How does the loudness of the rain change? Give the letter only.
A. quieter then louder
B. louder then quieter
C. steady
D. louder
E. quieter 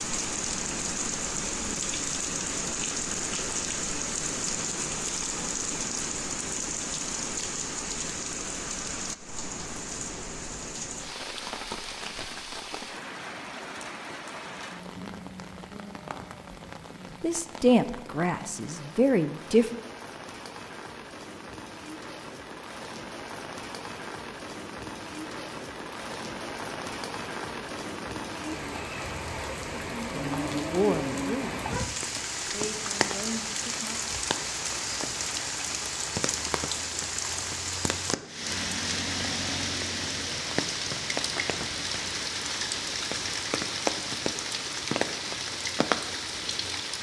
A.